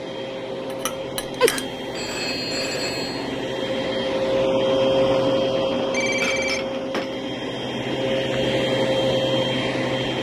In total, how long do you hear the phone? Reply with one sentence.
You can hear the phone for 3 seconds altogether.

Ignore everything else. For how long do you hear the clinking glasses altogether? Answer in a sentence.
The clinking glasses can be heard for 2 seconds in total.